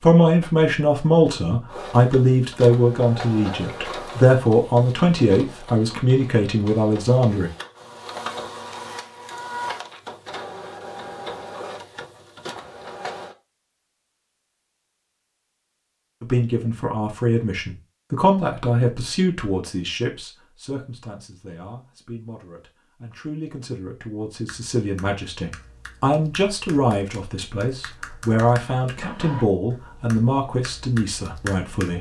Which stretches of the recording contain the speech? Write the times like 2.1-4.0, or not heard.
0.0-7.5, 16.2-31.9.